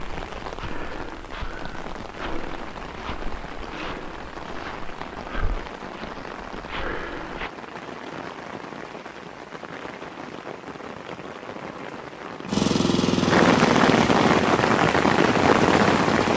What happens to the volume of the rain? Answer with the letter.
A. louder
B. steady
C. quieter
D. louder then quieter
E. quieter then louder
A.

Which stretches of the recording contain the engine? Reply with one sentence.
You can hear the engine from 12.4 to 16.3 s.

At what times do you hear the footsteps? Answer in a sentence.
You can hear the footsteps from 0.0 to 7.5 s.